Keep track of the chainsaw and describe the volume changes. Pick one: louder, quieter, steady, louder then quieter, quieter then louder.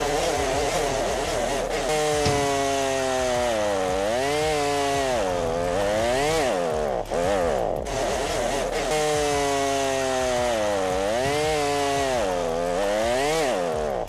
steady.